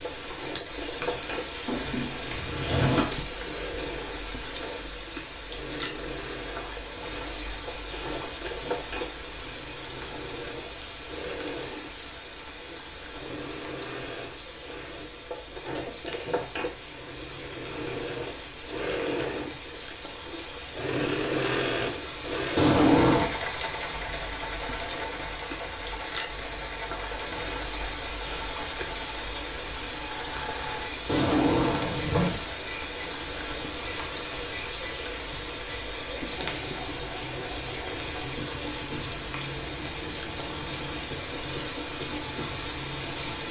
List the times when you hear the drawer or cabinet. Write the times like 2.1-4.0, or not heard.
1.6-3.1, 22.6-23.4, 31.1-32.4.